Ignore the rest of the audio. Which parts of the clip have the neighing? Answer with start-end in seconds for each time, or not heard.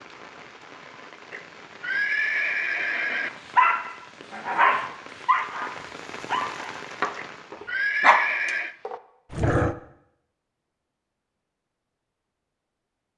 1.3-3.3, 7.2-8.8.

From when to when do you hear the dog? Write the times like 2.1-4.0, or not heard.
3.5-9.8.